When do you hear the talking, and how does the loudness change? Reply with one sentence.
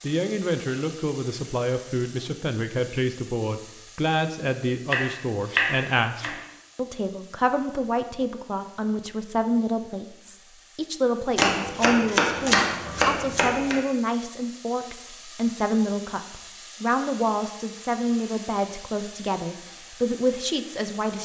The talking can be heard from 0.0 to 21.2 s, at a steady volume.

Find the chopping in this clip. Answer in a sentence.
You can hear the chopping from 4.9 to 6.3 s and from 11.3 to 13.8 s.